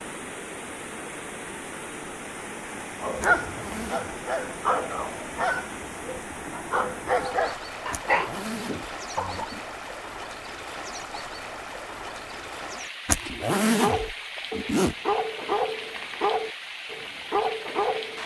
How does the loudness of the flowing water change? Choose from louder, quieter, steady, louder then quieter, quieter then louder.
steady.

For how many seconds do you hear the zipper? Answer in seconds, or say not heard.
4 s.